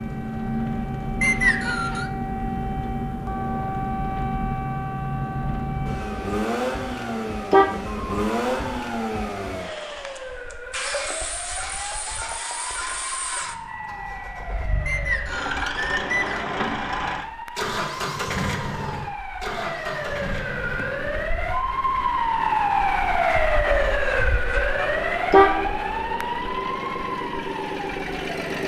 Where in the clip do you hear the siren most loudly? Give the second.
23 s.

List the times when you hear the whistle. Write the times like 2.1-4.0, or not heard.
1.2-2.1, 14.8-16.4.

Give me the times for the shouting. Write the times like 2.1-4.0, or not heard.
not heard.